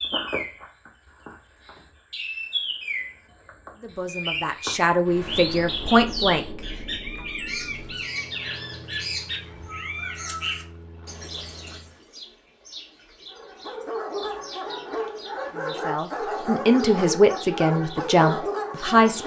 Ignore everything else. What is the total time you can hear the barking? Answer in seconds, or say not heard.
6 s.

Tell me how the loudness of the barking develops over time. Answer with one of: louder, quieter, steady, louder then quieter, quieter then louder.
steady.